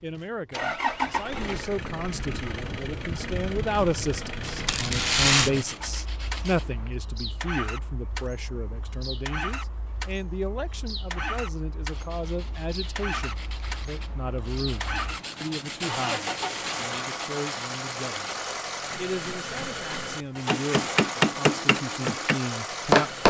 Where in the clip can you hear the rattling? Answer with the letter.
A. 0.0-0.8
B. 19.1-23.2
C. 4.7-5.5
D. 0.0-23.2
C.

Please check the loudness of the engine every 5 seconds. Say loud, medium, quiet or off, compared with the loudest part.
loud, medium, medium, loud, loud.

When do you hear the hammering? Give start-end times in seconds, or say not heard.
19.1-23.2.